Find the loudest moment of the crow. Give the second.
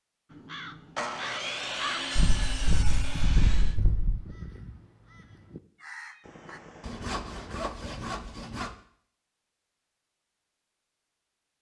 2 s.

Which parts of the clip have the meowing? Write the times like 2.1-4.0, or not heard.
2.1-4.2, 6.2-7.6.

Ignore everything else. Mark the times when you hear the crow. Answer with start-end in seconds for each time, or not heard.
0.3-6.6.